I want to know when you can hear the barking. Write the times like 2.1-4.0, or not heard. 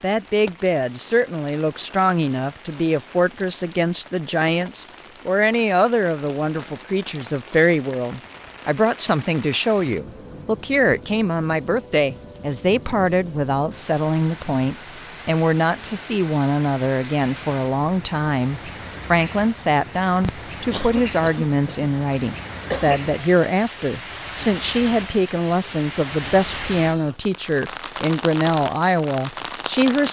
not heard.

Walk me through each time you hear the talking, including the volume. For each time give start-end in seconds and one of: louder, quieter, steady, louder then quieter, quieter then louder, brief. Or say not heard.
0.0-30.0 steady.